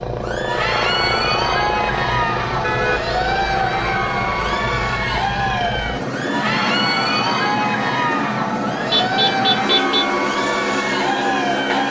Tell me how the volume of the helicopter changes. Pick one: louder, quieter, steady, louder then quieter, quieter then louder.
steady.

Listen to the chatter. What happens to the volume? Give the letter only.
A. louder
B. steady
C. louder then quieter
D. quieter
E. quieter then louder
B.